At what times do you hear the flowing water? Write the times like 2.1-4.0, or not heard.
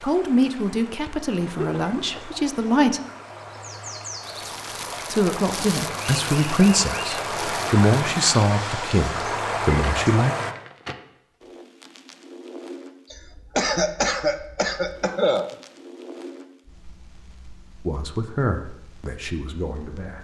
0.0-10.6.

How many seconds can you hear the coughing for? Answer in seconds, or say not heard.
3 s.